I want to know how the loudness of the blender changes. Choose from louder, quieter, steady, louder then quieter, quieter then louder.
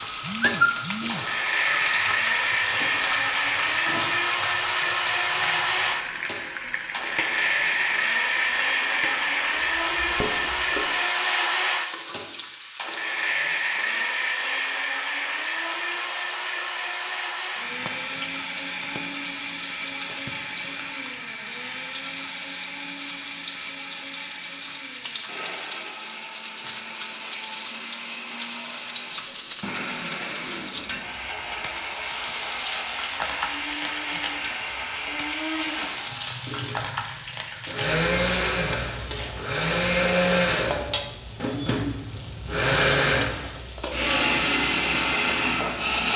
quieter then louder.